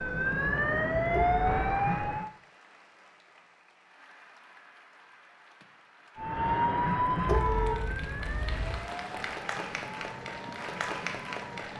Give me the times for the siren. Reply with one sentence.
You can hear the siren from 0.0 to 2.3 s and from 6.2 to 11.7 s.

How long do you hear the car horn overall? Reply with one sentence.
You can hear the car horn for 2 seconds altogether.